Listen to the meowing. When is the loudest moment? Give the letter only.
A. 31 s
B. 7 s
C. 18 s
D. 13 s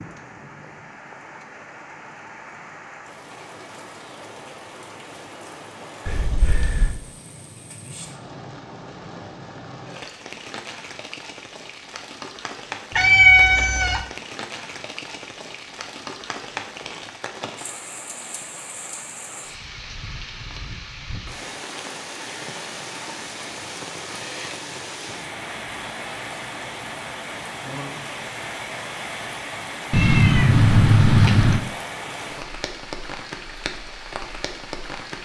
D.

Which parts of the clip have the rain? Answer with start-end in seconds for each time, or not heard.
0.0-35.2.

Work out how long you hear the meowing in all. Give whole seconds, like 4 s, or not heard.
4 s.